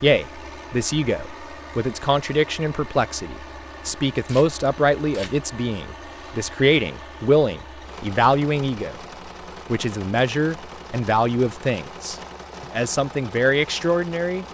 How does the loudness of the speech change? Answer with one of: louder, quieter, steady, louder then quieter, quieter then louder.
steady.